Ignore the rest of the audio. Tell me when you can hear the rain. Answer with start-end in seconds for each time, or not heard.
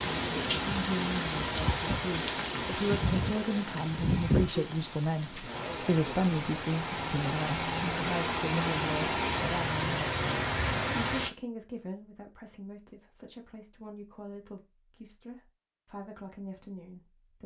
0.0-11.3.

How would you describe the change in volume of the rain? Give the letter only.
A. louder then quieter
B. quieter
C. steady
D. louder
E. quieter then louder
E.